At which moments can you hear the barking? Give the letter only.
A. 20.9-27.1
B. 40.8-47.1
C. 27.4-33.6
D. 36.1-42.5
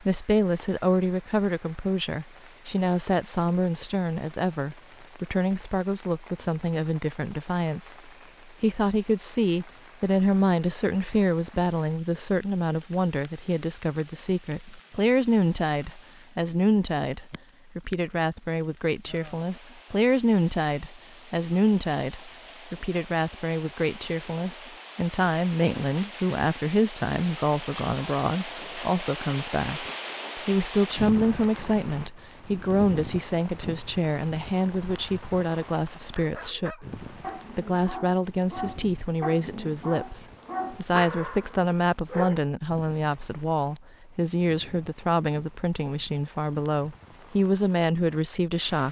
D.